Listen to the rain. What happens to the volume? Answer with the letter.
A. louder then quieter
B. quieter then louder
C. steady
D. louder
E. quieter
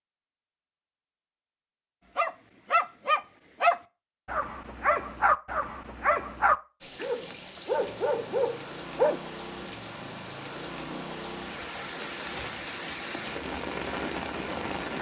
D.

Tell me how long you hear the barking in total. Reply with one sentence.
You can hear the barking for 7 seconds altogether.